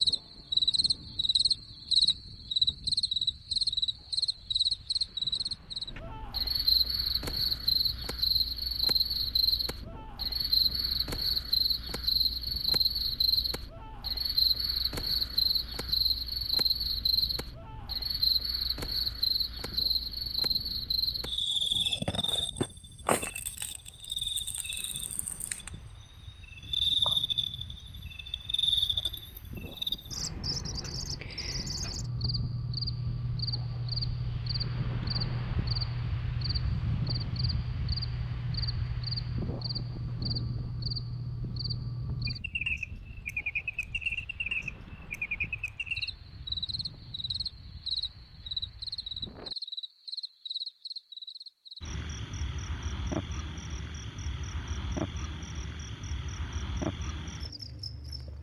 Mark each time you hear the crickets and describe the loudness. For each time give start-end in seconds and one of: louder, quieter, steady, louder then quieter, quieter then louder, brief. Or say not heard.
0.0-58.3 quieter.